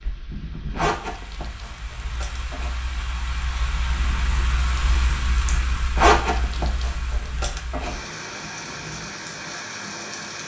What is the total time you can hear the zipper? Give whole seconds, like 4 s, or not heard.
4 s.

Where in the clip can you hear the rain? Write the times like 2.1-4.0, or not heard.
0.0-10.4.